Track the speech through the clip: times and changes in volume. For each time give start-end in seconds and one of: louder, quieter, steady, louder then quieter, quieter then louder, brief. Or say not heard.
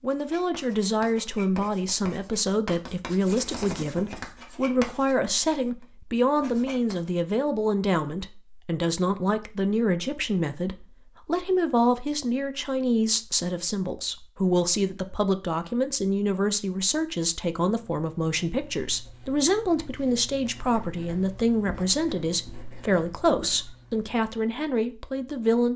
0.0-25.7 steady.